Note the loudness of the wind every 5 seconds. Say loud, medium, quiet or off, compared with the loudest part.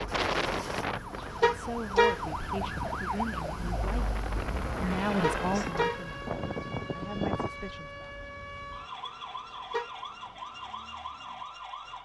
loud, loud, off.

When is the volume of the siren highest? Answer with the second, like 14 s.
3 s.